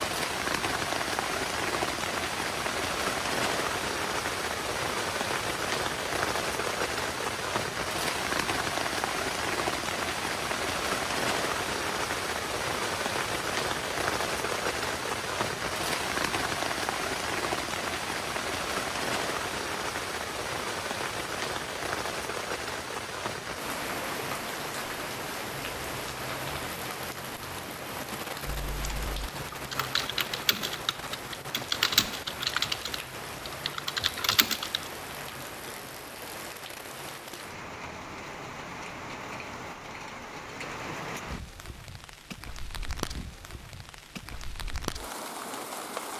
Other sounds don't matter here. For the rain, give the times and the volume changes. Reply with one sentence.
The rain can be heard from 0.0 to 46.1 s, getting quieter.